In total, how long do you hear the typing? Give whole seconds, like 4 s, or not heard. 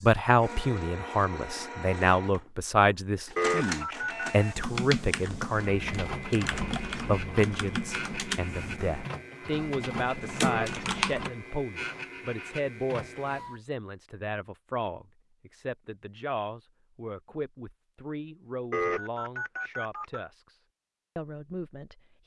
7 s.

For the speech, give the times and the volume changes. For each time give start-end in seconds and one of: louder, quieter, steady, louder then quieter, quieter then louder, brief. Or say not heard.
0.0-22.2 quieter.